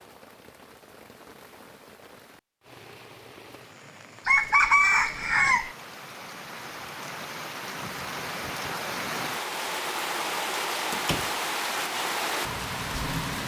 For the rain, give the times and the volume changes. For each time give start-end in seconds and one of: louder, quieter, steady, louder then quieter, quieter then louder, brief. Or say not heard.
0.0-13.4 louder.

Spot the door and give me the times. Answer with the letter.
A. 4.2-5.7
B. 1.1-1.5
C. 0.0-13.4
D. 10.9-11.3
D.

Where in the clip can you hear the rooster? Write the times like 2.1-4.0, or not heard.
4.2-5.7.